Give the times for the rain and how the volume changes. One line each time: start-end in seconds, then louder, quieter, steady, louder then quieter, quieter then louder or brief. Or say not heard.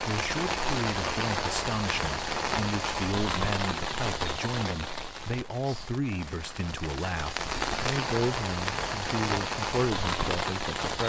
0.0-11.0 quieter then louder.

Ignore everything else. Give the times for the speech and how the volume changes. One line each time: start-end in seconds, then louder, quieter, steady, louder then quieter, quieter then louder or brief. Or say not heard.
0.0-11.0 steady.